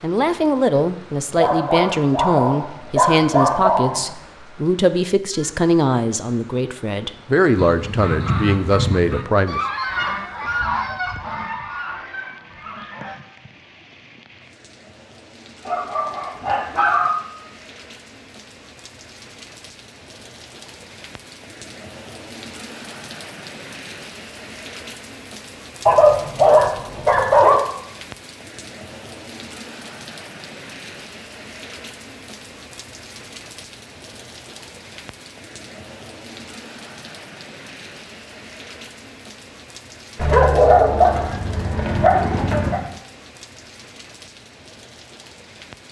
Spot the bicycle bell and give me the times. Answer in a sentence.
The bicycle bell can't be heard in this clip.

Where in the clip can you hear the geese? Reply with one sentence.
The geese can be heard from 7.5 to 13.2 s.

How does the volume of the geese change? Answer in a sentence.
The loudness of the geese goes down.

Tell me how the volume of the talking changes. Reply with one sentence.
The loudness of the talking stays about the same.